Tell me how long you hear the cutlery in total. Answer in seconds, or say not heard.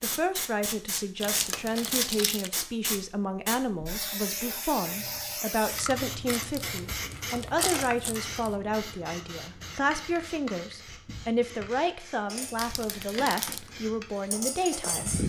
3 s.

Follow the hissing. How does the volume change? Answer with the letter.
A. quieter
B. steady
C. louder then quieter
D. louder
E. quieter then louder
A.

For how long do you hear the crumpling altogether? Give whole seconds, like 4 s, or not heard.
5 s.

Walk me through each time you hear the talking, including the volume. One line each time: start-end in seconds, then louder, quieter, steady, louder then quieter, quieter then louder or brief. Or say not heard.
0.0-15.2 steady.